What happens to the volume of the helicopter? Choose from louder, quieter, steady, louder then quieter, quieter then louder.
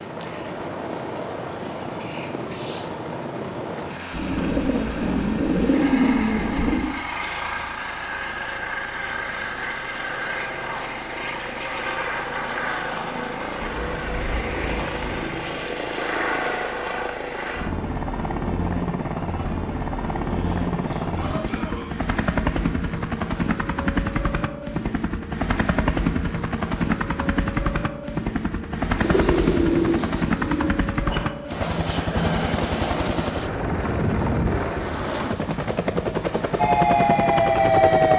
louder.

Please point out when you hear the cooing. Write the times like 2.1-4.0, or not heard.
4.1-6.9, 13.6-15.4, 29.0-30.7.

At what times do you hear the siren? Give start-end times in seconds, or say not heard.
36.5-38.1.